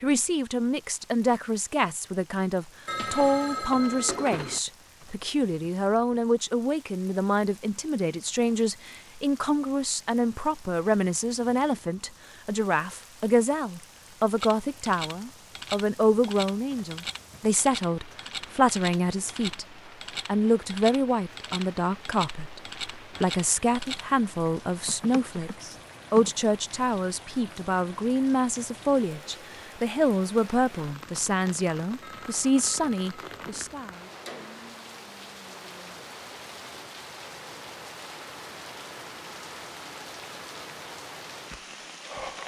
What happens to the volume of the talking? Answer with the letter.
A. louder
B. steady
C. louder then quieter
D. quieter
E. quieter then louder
B.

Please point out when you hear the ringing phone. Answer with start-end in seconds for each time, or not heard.
2.9-4.6, 32.0-33.8.